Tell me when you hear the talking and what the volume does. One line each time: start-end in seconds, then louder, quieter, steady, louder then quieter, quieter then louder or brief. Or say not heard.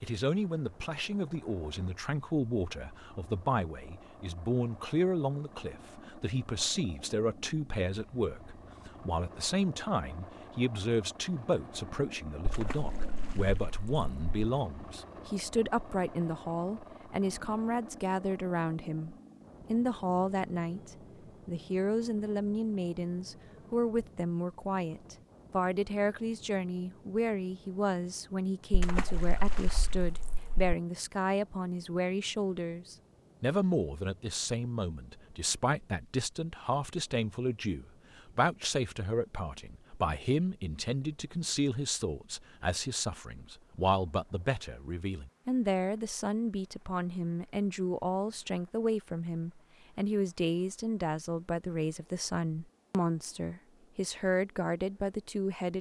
0.0-55.7 steady.